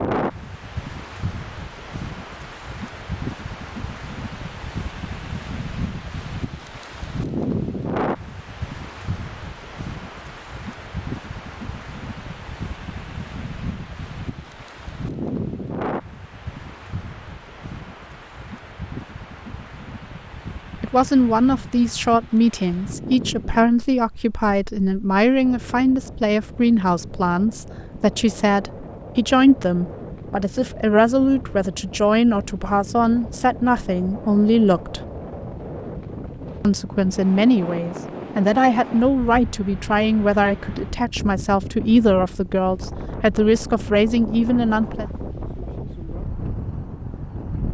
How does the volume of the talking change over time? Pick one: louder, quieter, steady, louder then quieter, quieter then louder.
steady.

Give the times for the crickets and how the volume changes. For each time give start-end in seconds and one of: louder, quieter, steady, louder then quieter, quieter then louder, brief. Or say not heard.
not heard.